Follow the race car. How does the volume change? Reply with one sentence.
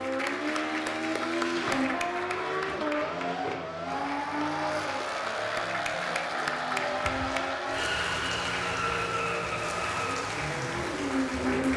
The volume of the race car stays about the same.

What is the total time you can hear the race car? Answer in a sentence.
The race car can be heard for 12 seconds in total.